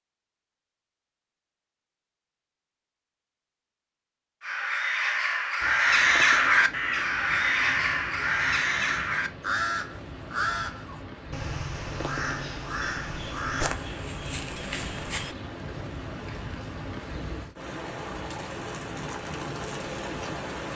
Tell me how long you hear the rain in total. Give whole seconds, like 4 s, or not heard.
15 s.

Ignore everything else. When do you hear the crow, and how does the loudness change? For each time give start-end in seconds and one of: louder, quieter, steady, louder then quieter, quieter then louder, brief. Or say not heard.
4.4-15.9 quieter.